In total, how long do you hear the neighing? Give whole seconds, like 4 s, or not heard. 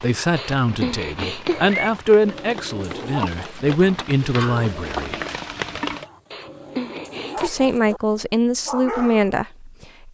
3 s.